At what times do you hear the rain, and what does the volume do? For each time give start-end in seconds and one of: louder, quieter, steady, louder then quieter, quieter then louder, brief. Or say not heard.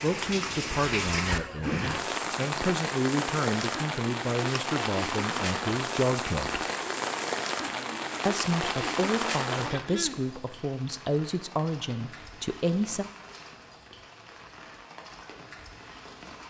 0.0-16.4 quieter.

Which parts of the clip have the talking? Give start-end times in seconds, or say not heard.
0.0-6.6, 8.2-13.1.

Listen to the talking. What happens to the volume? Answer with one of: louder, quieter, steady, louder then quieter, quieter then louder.
steady.